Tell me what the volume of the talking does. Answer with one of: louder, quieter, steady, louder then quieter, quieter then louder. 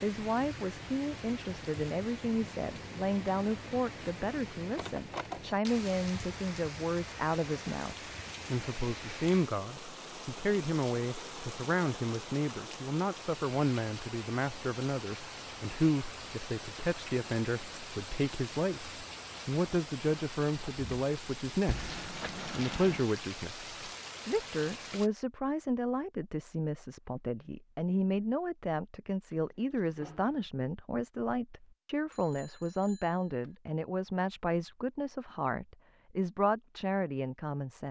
steady.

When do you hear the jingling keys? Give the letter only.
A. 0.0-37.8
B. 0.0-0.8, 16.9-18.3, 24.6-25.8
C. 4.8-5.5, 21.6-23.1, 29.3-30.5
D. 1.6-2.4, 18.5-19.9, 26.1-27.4
C.